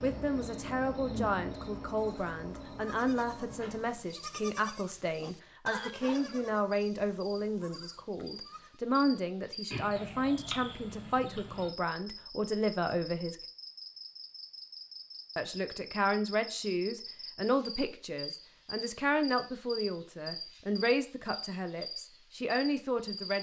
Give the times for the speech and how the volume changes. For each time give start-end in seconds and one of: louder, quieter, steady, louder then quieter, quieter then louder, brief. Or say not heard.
0.0-13.3 steady
15.3-23.3 steady.